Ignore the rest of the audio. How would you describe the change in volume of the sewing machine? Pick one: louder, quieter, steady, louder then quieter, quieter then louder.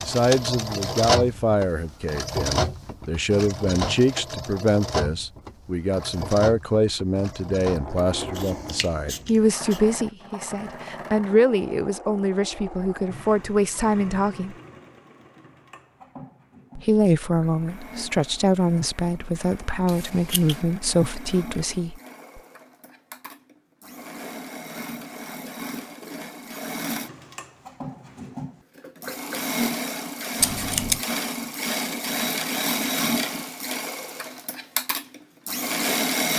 quieter then louder.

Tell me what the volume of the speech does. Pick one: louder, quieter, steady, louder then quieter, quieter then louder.
steady.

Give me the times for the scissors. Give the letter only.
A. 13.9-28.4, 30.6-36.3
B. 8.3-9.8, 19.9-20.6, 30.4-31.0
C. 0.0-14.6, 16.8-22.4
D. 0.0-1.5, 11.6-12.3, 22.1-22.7
B.